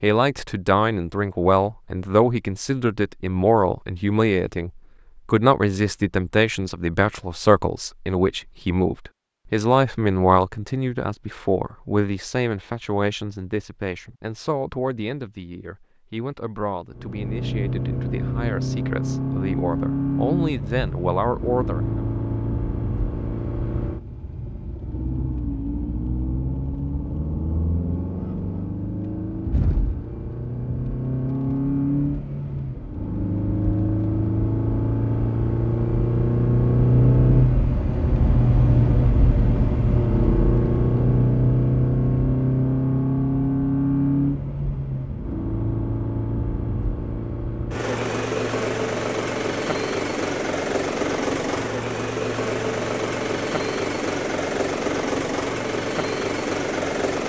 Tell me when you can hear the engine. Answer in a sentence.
The engine can be heard from 16.9 to 57.2 s.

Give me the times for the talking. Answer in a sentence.
You can hear the talking from 0.0 to 22.0 s.